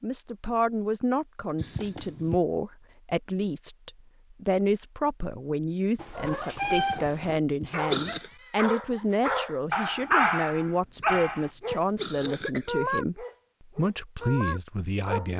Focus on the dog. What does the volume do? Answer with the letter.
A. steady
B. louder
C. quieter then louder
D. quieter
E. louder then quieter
E.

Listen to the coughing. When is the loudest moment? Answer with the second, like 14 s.
8 s.